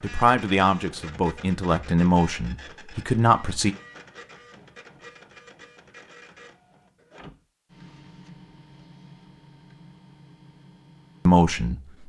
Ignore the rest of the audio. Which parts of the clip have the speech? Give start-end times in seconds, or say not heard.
0.0-3.8, 11.2-12.0.